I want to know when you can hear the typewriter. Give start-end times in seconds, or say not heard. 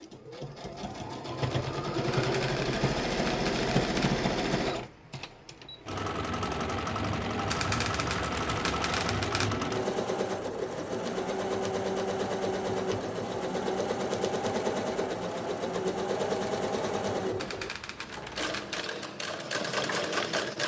2.1-4.2, 7.5-9.5, 17.4-18.9.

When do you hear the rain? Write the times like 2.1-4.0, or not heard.
not heard.